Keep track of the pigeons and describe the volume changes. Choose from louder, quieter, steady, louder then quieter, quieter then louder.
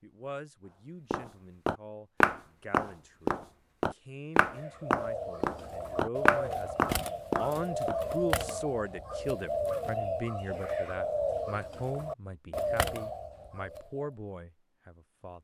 steady.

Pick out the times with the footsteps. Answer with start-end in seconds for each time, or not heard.
1.1-8.0.